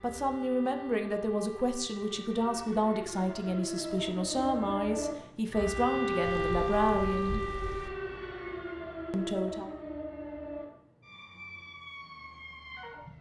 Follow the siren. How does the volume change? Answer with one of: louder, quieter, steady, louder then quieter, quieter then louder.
louder then quieter.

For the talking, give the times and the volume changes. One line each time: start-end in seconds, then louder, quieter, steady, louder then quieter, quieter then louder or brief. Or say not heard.
0.0-7.5 steady
9.1-9.8 brief.